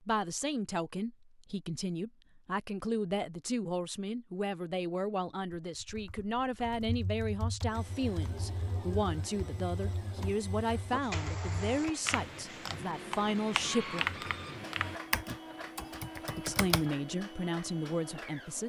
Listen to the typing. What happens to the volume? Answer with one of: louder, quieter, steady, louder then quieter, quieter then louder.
louder.